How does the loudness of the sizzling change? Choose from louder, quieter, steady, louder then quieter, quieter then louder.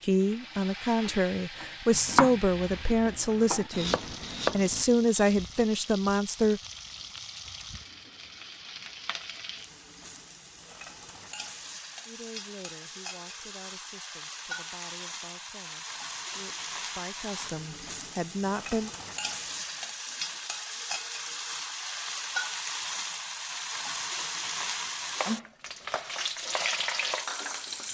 louder.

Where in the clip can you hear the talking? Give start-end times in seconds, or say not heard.
0.0-6.6, 12.1-18.9.